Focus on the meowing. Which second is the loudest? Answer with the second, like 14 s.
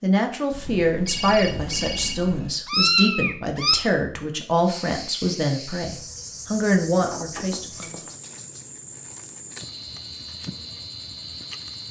3 s.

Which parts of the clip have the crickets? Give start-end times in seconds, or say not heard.
4.6-11.8.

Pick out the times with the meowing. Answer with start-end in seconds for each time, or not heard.
1.1-3.8.